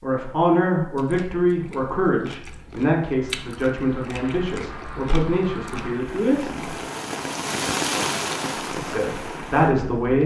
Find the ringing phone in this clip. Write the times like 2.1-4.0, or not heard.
not heard.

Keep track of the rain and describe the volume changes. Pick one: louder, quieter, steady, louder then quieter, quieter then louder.
louder then quieter.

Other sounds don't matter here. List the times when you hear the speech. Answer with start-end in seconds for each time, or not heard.
0.0-6.7, 8.7-10.2.